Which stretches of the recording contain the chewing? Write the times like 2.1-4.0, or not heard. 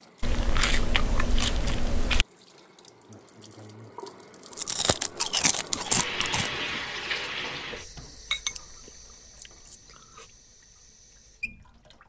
0.2-2.2, 4.5-6.5, 8.3-10.2.